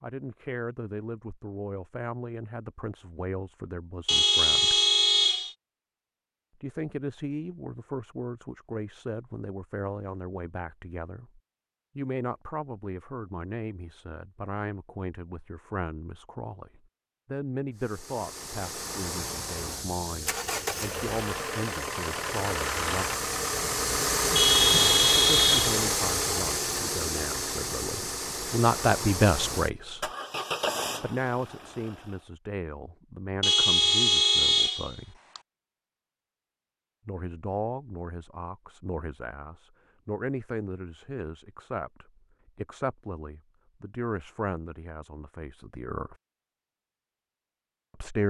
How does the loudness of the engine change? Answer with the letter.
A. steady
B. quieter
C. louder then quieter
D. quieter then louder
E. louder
C.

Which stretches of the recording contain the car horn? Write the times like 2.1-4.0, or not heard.
4.0-5.5, 24.4-25.7, 33.4-35.4.